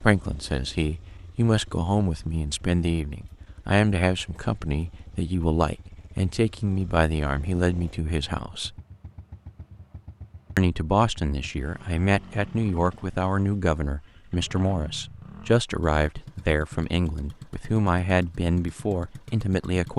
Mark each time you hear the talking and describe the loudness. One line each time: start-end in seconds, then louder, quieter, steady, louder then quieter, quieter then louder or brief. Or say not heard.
0.0-8.7 steady
10.6-19.9 steady.